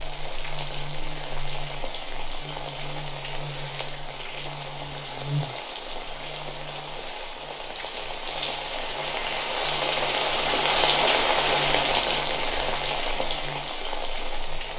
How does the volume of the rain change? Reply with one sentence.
The volume of the rain goes up.